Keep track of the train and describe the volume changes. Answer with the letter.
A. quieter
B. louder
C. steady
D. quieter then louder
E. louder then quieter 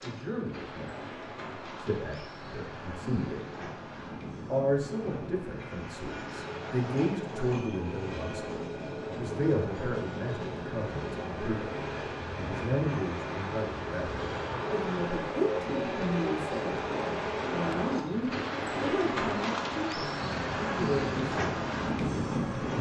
B.